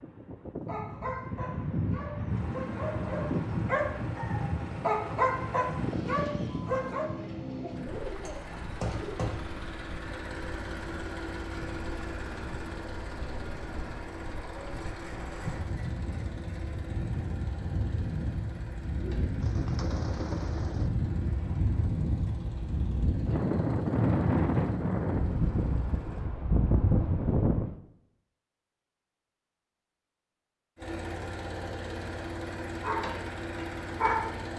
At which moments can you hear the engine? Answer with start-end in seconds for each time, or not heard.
2.2-26.3, 30.8-34.5.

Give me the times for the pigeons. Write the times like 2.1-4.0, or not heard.
7.2-9.2, 19.0-20.9.